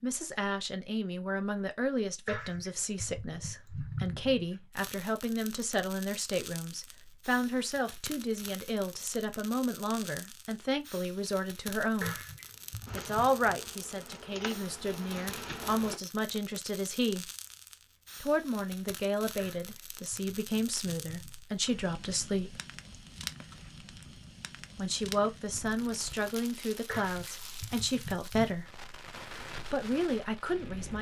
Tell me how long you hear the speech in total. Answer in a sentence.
The speech can be heard for 26 seconds in total.